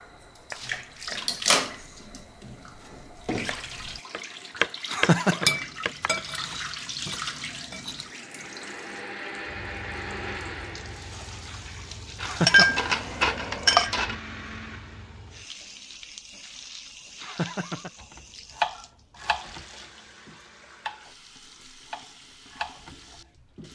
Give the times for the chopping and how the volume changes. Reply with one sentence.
You can hear the chopping from 0.0 to 6.1 s, getting quieter then louder; briefly from 18.0 to 19.6 s; briefly from 20.2 to 21.1 s; and briefly from 21.9 to 23.6 s.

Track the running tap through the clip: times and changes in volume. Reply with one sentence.
You can hear the running tap from 0.0 to 23.6 s, getting quieter.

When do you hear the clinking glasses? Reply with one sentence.
You can hear the clinking glasses from 5.5 to 8.1 s and from 12.2 to 14.2 s.